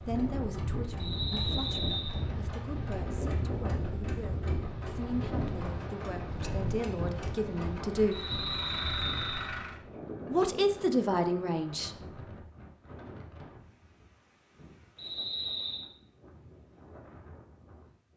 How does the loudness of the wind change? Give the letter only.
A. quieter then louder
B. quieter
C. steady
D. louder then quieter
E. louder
B.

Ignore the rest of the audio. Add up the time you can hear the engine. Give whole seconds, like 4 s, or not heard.
10 s.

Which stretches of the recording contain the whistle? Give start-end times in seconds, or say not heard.
0.9-2.2, 8.1-9.5, 14.9-15.9.